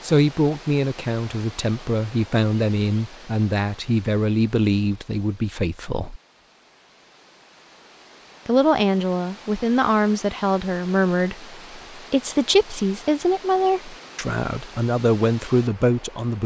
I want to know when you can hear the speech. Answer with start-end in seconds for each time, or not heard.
0.0-6.2, 8.4-16.4.